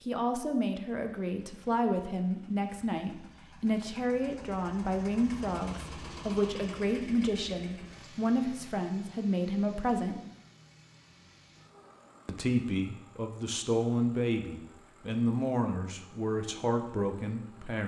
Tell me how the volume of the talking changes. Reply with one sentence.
The loudness of the talking stays about the same.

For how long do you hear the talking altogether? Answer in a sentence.
The talking can be heard for 16 seconds in total.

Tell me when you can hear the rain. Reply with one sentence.
The rain can't be heard in this clip.